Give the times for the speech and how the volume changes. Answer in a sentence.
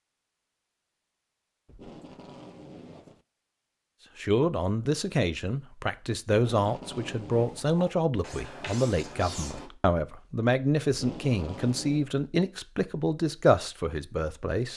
You can hear the speech from 4.2 to 14.7 s, at a steady volume.